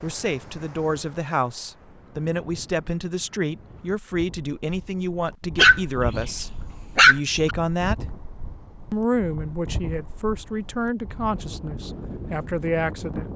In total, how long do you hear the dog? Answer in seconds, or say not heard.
2 s.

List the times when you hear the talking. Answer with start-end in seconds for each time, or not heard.
0.0-8.1, 8.9-13.3.